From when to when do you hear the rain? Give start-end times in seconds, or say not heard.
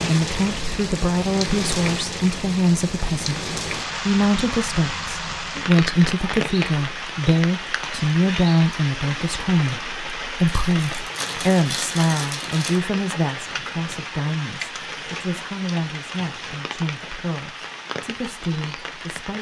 0.0-19.3.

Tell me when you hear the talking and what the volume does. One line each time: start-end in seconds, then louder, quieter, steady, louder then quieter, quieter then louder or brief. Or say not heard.
0.0-19.3 quieter.